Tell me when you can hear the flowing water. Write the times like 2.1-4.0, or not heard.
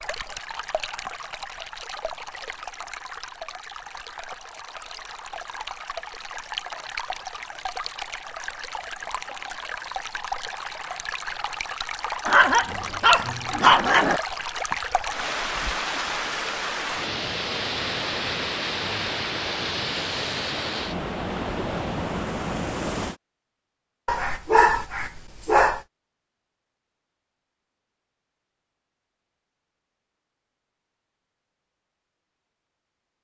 0.0-23.1.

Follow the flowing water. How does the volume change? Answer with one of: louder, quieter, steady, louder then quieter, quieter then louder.
louder.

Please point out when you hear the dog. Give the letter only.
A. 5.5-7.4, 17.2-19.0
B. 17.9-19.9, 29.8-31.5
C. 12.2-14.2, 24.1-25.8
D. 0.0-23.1
C.